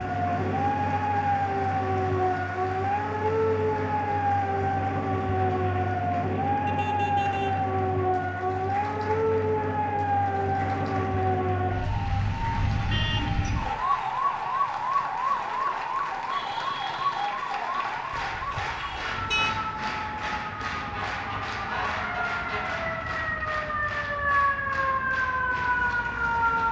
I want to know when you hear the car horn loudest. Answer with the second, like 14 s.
19 s.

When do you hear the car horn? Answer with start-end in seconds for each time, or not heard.
6.7-7.5, 18.1-19.6.